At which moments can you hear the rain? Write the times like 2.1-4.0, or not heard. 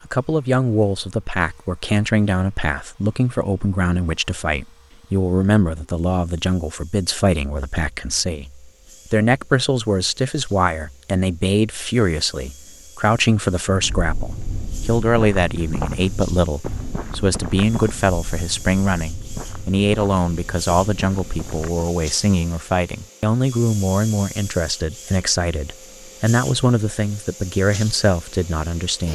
not heard.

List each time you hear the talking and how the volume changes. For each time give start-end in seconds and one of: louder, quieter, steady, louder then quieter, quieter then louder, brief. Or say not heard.
0.1-29.1 steady.